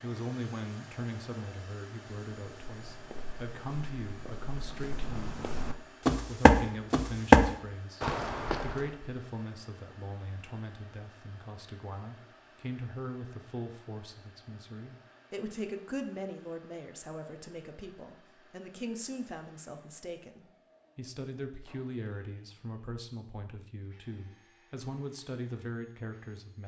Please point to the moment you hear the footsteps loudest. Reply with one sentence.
The volume of the footsteps peaks at 7 seconds.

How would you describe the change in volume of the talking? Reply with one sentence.
The loudness of the talking stays about the same.